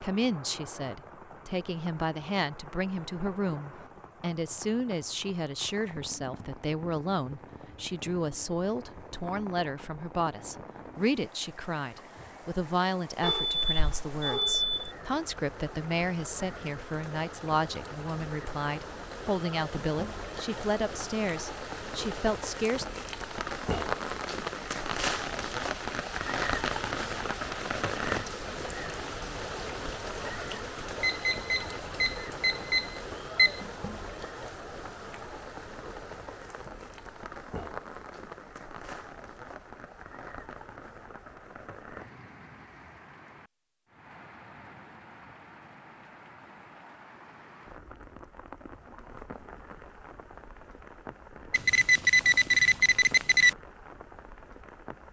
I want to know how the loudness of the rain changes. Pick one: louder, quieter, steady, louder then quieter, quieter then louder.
louder then quieter.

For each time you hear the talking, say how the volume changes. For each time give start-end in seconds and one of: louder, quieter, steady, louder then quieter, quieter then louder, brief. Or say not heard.
0.0-22.9 steady.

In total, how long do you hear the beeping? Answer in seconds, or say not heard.
6 s.